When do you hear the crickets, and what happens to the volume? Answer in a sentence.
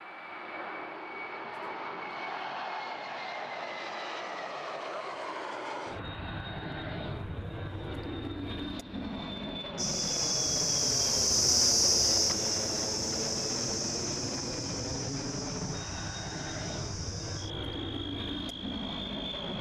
You can hear the crickets from 9.8 to 19.5 s, getting quieter.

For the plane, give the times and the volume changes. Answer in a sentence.
You can hear the plane from 0.0 to 19.5 s, at a steady volume.